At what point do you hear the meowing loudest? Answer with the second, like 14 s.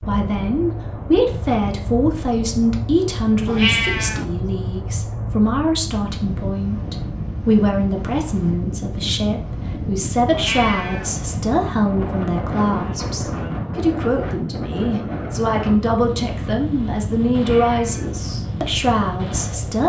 4 s.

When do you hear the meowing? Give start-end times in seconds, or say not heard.
3.5-4.2, 10.3-11.1, 17.4-18.1.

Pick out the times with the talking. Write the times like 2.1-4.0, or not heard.
0.0-19.8.